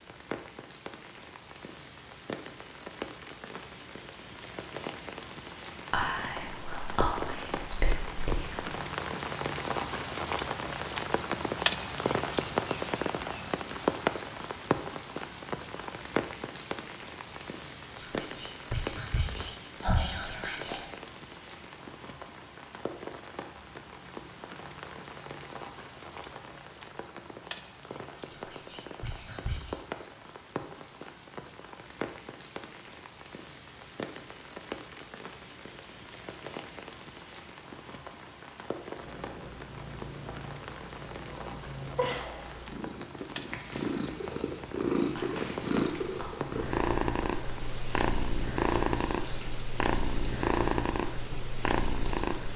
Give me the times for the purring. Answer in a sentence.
The purring can be heard from 39.0 to 52.5 s.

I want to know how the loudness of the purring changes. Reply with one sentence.
The loudness of the purring goes up.